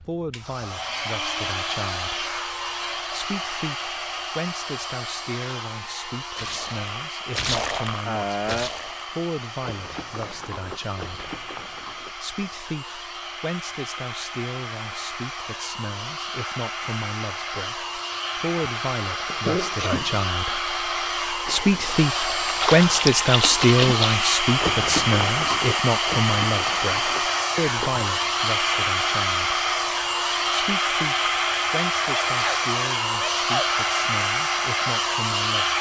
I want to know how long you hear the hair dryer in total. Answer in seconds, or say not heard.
36 s.